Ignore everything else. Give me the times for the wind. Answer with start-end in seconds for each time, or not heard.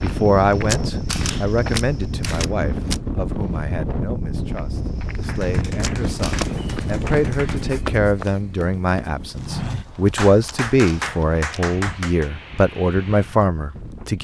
0.0-14.1.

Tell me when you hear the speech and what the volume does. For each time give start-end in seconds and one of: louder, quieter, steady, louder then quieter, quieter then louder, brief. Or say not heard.
0.0-14.1 quieter then louder.